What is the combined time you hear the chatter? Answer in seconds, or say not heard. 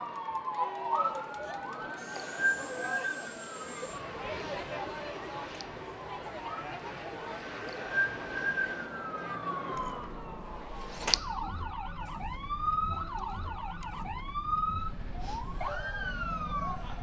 17 s.